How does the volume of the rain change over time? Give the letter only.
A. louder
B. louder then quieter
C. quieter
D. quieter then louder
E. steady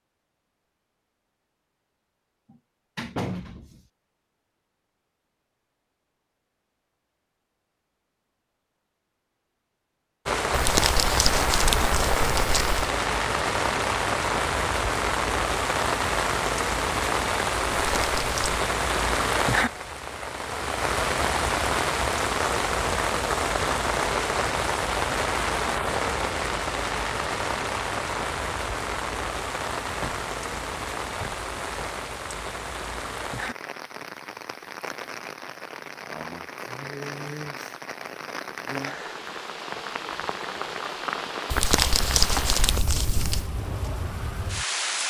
C.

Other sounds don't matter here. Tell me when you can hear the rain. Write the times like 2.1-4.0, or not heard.
10.2-45.0.